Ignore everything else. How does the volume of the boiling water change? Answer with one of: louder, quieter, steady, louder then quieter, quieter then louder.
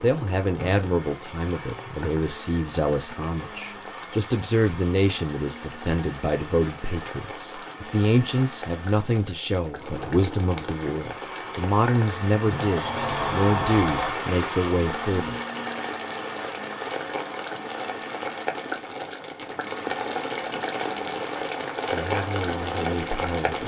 louder.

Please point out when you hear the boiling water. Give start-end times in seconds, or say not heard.
0.0-23.6.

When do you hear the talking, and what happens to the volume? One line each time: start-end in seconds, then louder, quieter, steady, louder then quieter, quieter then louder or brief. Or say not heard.
0.0-15.4 steady
21.9-23.6 brief.